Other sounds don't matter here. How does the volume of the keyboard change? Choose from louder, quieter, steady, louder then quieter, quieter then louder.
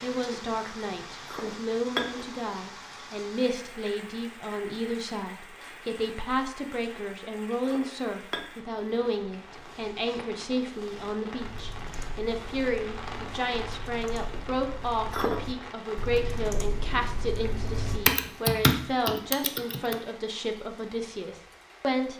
louder.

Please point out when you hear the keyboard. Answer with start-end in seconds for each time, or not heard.
11.4-19.9.